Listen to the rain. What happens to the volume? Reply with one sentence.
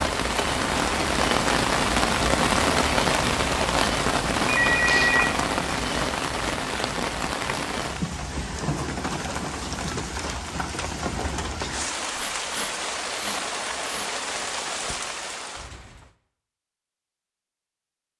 The loudness of the rain goes down.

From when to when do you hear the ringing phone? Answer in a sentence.
The ringing phone can be heard from 4.5 to 5.3 s.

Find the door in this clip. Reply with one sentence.
The door can't be heard in this clip.